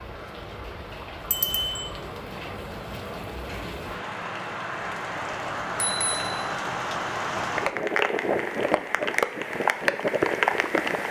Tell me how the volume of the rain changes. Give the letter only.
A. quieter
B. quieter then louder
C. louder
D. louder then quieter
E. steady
C.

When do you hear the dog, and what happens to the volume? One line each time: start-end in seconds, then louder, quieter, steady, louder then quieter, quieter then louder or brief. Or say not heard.
not heard.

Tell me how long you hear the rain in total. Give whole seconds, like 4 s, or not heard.
11 s.